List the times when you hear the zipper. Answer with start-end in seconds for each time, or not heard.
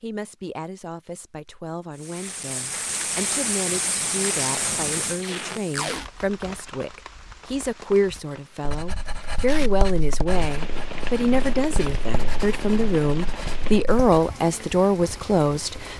not heard.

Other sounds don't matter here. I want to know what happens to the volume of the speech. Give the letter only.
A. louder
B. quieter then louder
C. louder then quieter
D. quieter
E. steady
A.